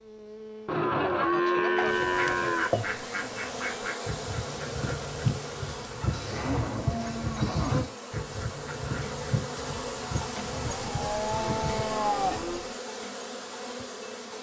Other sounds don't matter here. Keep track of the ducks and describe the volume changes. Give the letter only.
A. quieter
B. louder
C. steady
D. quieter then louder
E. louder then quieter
A.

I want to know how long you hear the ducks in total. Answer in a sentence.
You can hear the ducks for 10 seconds altogether.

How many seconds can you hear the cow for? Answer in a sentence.
You can hear the cow for 6 seconds altogether.